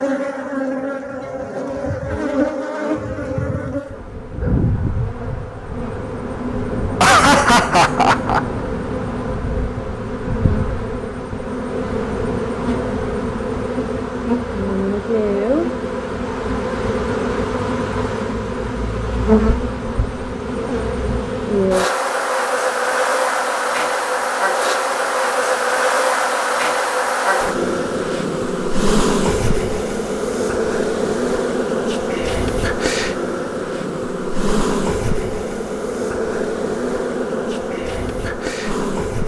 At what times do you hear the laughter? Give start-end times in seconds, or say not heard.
7.0-8.4.